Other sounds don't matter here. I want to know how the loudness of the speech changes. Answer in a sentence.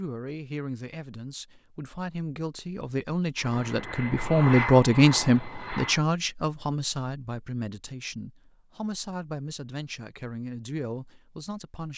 The volume of the speech goes up, then down.